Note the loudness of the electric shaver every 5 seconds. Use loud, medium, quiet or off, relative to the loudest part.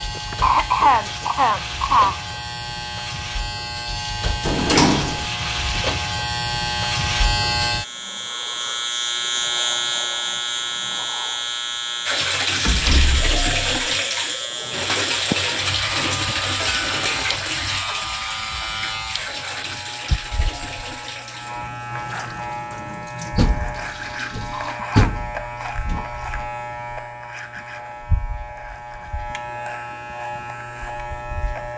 medium, loud, loud, medium, medium, medium, medium.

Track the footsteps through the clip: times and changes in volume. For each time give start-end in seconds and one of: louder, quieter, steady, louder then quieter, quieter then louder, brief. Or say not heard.
not heard.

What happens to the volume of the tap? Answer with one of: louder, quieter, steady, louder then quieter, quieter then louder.
quieter.